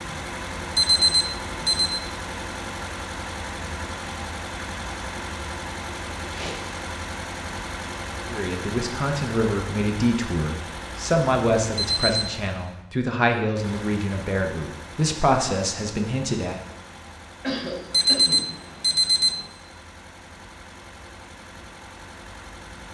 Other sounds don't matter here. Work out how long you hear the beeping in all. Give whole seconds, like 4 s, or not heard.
3 s.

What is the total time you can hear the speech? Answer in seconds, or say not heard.
8 s.